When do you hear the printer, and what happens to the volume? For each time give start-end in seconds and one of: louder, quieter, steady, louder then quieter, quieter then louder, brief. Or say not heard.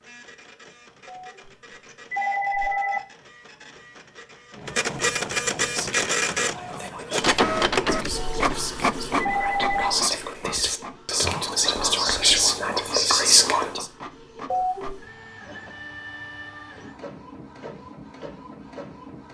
0.0-19.2 louder then quieter.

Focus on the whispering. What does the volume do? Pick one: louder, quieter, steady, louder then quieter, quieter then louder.
louder.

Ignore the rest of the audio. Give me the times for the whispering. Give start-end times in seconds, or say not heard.
5.6-13.8.